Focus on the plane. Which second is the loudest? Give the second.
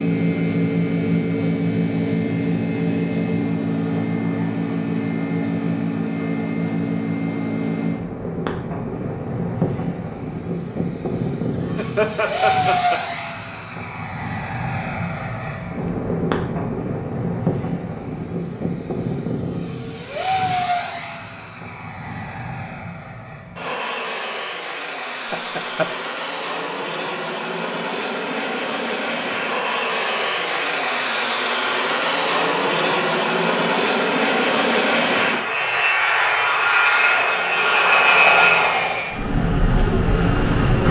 38 s.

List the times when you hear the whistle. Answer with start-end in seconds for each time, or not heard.
not heard.